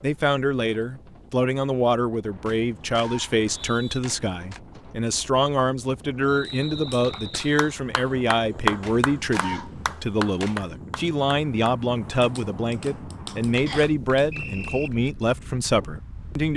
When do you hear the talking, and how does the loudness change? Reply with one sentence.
You can hear the talking from 0.0 to 16.5 s, at a steady volume.